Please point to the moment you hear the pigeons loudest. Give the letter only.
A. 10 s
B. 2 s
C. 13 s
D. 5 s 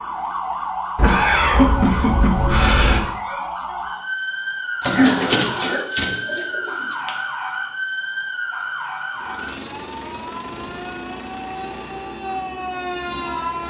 D.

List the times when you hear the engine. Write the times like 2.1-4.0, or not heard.
9.2-13.6.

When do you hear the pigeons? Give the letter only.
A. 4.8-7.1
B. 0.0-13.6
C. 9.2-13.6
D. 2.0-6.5
A.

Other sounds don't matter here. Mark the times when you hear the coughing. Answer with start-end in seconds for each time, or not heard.
0.9-3.0, 5.0-5.8, 9.4-10.2.